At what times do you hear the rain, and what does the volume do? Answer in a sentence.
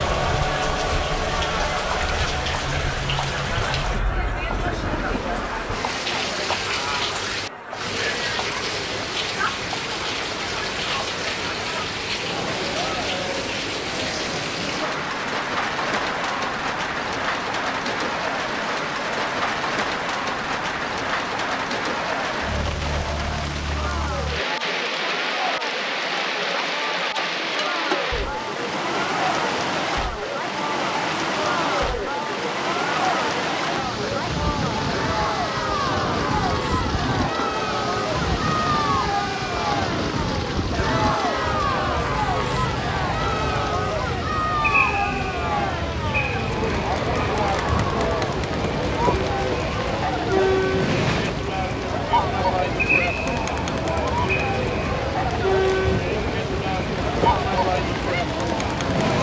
You can hear the rain from 0.0 to 59.1 s, at a steady volume.